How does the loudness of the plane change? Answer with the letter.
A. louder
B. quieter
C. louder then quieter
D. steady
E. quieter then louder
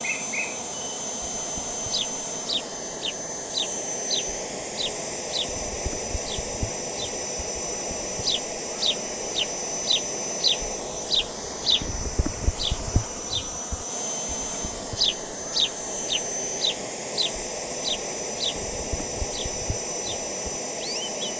D.